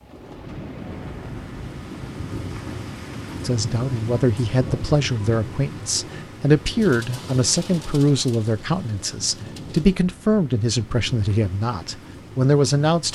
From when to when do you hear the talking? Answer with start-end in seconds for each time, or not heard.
3.5-13.1.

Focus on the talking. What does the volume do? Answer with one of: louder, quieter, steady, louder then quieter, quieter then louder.
steady.